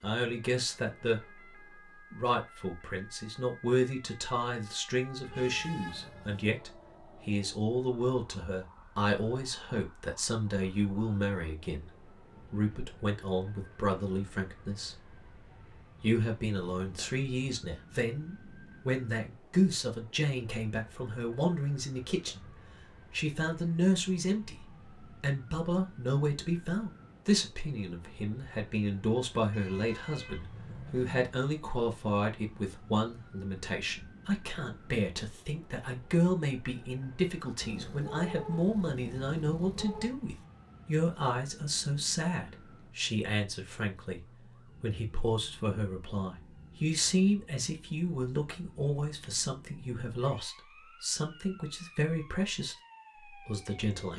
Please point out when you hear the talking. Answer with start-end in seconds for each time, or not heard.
0.0-1.4, 2.1-15.2, 16.0-22.5, 23.1-44.2, 44.8-54.1.